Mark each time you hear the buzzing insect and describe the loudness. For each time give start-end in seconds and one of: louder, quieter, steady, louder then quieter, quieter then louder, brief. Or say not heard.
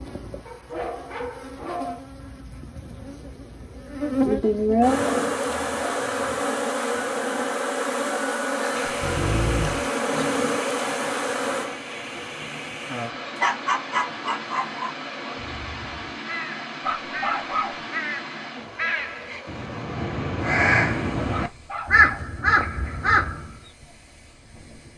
0.0-16.2 louder then quieter.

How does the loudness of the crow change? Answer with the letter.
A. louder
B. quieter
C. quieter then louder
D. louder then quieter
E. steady
A.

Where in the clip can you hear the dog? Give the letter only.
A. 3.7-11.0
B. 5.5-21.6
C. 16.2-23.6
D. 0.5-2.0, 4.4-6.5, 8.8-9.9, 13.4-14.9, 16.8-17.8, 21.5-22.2
D.